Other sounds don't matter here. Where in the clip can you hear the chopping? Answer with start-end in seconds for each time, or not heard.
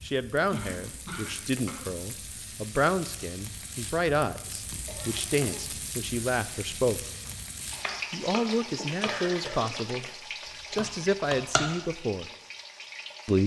7.2-10.1, 10.8-11.8.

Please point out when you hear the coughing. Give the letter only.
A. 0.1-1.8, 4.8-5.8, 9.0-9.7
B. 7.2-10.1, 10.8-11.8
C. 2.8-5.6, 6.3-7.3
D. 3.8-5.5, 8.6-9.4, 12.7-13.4
A.